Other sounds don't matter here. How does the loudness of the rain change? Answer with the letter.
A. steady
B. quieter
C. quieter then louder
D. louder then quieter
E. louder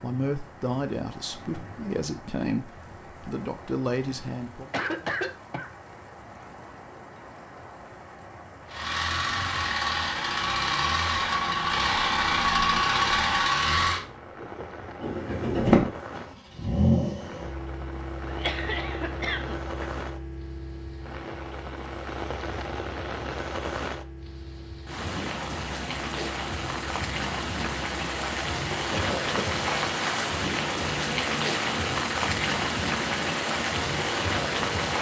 E.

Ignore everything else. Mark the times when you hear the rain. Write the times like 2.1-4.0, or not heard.
0.0-34.9.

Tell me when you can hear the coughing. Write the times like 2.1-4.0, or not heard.
4.7-5.7, 18.2-20.1, 28.9-29.6.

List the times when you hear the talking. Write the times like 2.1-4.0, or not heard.
0.0-4.7.